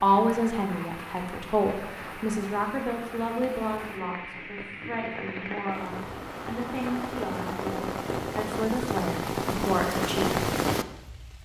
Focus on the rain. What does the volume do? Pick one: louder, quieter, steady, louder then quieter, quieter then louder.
louder.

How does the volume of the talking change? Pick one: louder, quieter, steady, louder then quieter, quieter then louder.
quieter then louder.